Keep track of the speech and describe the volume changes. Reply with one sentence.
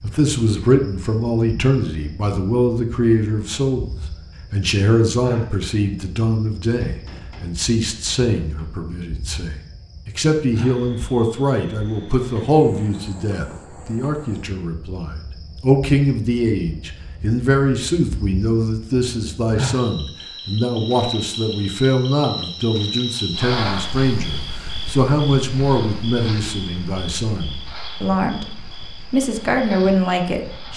The volume of the speech stays about the same.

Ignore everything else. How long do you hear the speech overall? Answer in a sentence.
The speech can be heard for 30 seconds in total.